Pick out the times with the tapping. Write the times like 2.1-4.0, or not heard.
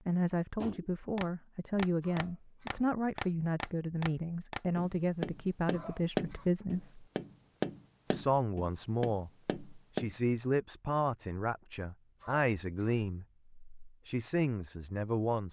0.6-10.1.